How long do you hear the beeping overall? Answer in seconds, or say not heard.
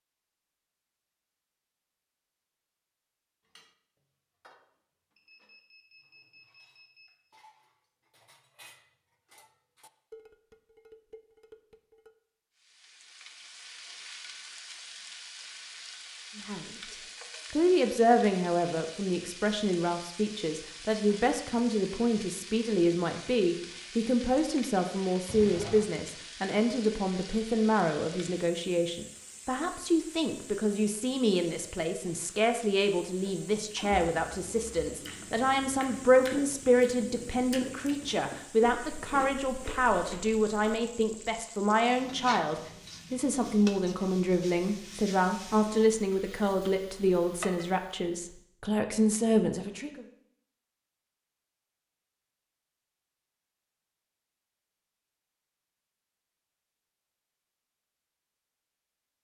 2 s.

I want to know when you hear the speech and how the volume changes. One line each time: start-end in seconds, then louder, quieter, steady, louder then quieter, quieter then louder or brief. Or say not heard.
16.4-50.0 steady.